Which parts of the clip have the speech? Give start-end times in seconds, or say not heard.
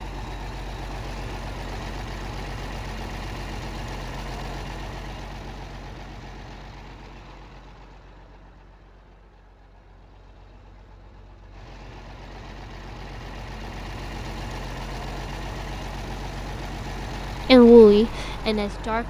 17.4-19.0.